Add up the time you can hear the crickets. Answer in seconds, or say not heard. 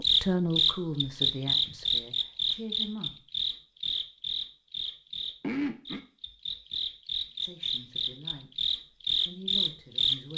10 s.